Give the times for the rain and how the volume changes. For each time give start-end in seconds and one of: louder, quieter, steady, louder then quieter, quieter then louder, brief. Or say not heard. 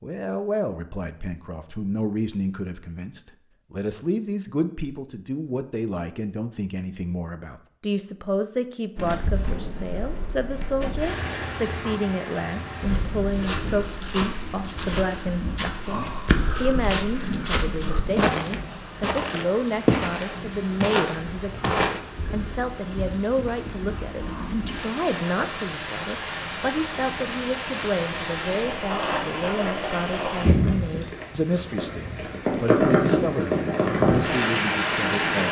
8.9-35.4 louder.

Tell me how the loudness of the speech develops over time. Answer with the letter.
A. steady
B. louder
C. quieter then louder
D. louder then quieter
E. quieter
A.